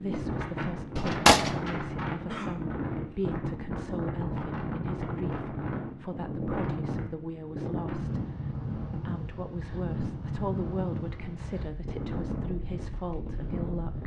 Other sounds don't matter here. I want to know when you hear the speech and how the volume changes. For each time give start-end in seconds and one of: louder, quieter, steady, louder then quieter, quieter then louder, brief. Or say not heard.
0.0-14.0 steady.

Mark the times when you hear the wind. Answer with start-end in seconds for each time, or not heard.
0.0-14.0.